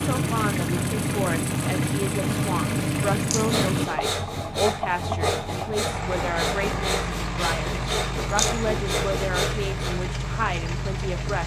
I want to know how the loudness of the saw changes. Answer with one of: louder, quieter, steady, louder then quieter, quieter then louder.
steady.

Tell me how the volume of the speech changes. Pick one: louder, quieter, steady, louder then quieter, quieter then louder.
steady.